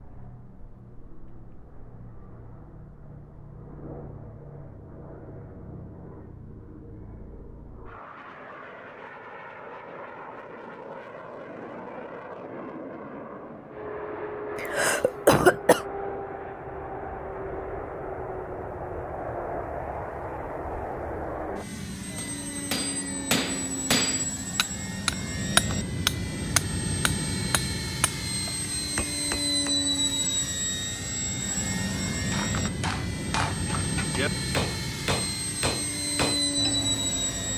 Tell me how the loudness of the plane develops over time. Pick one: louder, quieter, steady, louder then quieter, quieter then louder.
louder.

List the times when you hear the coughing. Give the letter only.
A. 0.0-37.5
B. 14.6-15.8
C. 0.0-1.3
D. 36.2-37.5
B.